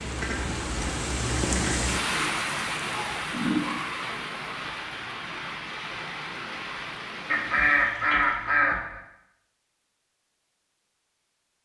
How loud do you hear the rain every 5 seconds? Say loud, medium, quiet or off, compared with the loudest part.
loud, medium, off.